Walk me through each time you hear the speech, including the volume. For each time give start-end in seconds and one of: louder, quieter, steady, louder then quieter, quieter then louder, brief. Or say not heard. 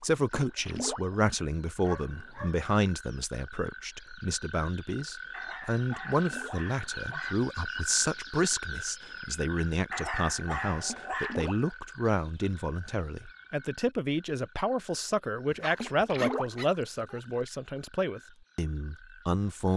0.0-19.7 steady.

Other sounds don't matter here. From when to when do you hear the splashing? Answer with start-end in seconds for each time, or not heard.
0.3-1.1, 6.1-6.7, 10.8-11.9, 15.8-16.9.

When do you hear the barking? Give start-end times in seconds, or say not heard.
1.8-2.6, 5.3-7.3, 9.9-11.4, 15.5-17.2.